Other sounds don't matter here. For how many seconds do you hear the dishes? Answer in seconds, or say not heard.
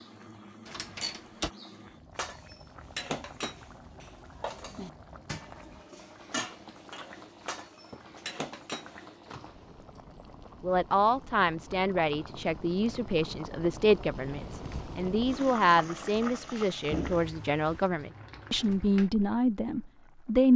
7 s.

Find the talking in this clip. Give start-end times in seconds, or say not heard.
10.6-20.5.